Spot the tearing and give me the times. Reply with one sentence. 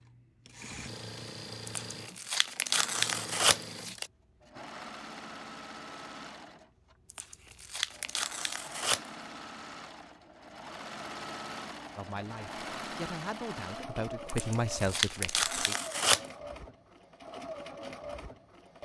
You can hear the tearing from 1.6 to 4.1 s, from 7.1 to 9.1 s and from 14.3 to 16.2 s.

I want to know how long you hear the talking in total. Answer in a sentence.
You can hear the talking for 4 seconds altogether.